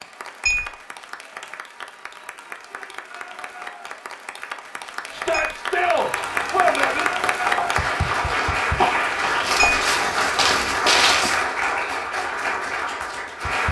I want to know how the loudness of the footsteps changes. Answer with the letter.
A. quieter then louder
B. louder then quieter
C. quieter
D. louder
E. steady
D.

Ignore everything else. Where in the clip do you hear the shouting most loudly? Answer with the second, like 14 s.
7 s.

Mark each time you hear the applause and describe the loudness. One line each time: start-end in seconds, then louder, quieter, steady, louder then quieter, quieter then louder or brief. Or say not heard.
0.0-13.6 louder.